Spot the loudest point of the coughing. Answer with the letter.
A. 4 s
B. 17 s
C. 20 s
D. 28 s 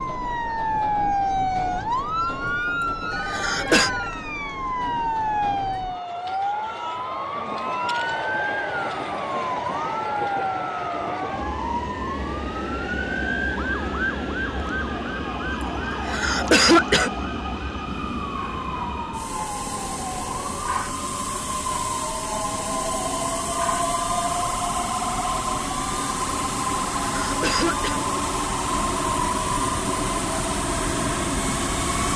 B.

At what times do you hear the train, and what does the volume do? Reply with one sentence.
You can hear the train from 0.0 to 32.1 s, getting louder.